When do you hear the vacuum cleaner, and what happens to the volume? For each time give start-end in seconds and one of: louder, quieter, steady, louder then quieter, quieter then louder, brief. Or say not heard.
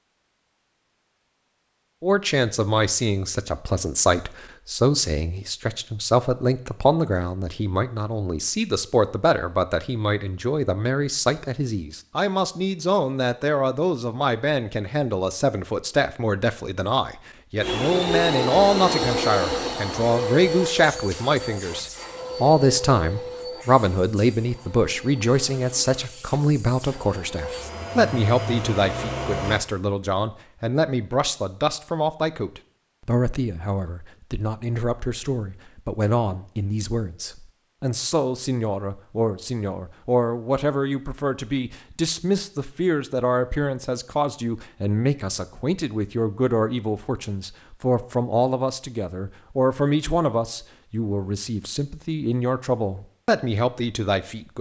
17.6-29.6 quieter then louder.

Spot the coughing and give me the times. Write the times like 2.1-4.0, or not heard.
not heard.